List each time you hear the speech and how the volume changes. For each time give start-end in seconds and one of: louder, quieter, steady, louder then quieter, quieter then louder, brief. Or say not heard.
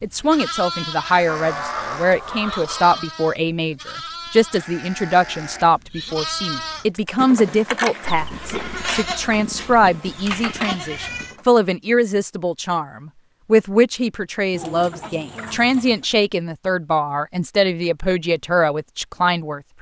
0.0-19.7 steady.